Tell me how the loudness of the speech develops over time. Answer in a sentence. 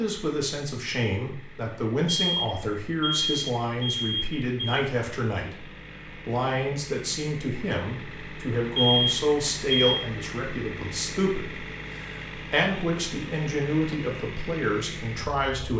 The loudness of the speech stays about the same.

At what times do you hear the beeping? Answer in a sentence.
The beeping can be heard from 2.0 to 4.8 s and from 8.8 to 10.1 s.